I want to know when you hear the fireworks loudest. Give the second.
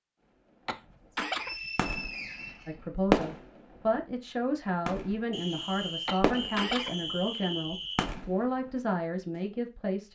3 s.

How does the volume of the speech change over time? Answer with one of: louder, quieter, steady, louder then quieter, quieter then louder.
steady.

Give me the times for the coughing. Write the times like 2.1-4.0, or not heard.
0.7-1.6, 6.0-7.5.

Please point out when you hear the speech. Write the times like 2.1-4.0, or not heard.
2.6-10.0.